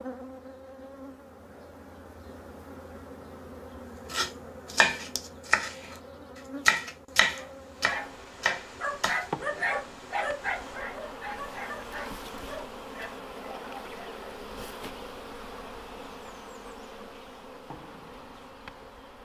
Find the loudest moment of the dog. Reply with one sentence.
The volume of the dog peaks at 10 seconds.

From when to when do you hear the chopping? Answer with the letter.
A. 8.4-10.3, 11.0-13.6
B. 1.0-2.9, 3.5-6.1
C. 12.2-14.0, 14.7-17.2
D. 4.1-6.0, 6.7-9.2
D.